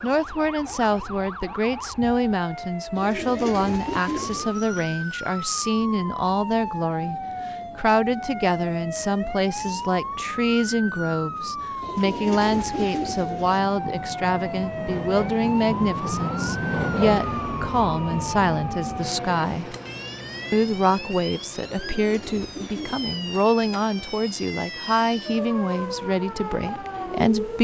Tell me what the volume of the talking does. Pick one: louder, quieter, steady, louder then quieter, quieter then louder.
steady.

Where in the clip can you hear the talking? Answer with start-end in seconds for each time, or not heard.
0.0-19.8, 20.5-27.5.